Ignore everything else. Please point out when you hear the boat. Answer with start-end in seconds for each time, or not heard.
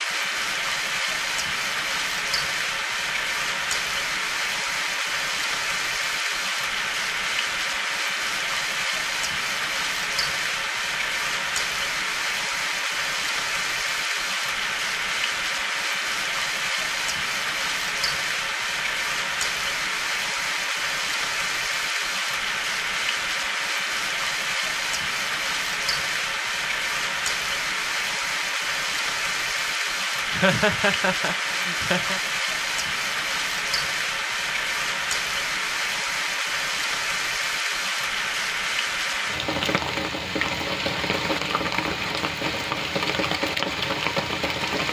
not heard.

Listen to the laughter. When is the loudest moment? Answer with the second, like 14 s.
31 s.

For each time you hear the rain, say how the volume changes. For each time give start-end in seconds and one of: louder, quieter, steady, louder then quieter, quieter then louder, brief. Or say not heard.
0.0-44.8 steady.